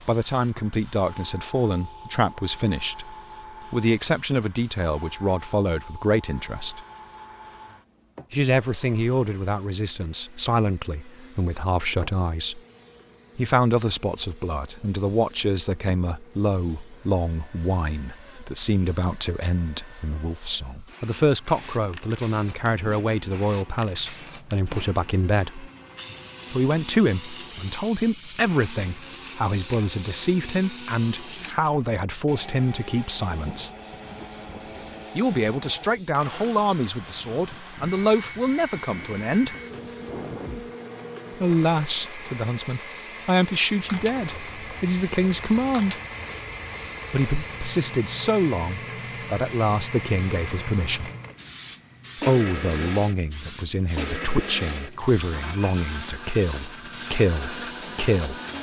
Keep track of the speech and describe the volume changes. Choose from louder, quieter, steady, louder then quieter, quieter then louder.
steady.